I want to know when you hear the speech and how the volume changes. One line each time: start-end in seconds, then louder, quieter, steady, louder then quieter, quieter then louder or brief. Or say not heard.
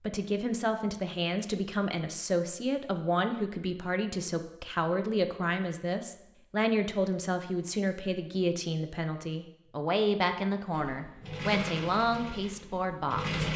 0.0-13.4 steady.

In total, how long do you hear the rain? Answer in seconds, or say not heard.
not heard.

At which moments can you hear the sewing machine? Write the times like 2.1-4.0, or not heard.
10.7-13.5.